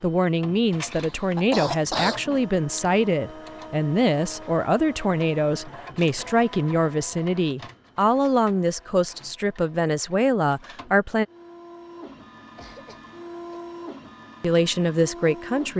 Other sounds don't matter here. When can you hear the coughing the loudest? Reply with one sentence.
The volume of the coughing peaks at 2 seconds.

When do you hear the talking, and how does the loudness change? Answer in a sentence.
The talking can be heard from 0.0 to 11.2 s, at a steady volume; and briefly from 14.4 to 15.7 s.